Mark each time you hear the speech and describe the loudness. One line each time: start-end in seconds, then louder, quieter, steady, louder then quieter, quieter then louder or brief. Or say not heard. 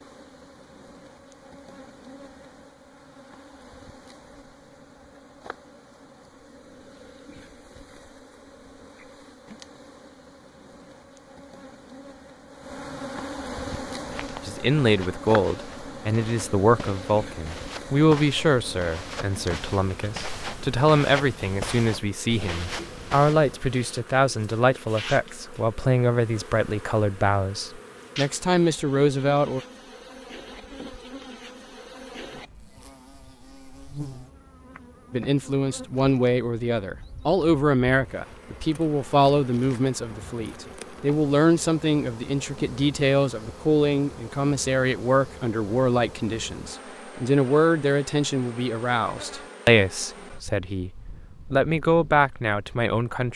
14.4-29.6 steady
35.1-50.9 steady
51.5-53.3 brief.